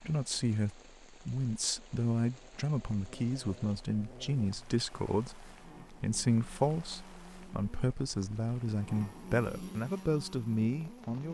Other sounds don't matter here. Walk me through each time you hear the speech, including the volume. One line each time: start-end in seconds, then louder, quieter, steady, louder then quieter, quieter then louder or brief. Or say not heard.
0.0-11.2 steady.